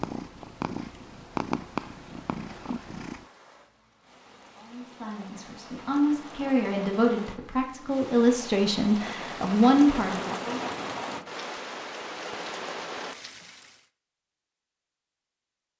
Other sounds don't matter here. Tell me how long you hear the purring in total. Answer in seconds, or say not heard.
3 s.